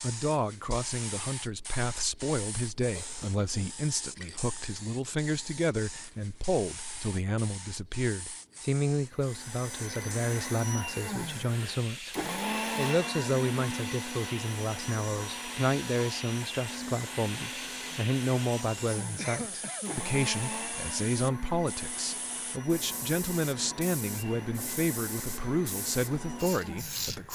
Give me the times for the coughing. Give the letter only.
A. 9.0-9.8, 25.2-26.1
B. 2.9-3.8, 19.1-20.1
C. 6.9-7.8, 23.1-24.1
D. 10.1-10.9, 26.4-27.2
B.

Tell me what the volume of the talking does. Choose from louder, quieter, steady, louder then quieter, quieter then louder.
steady.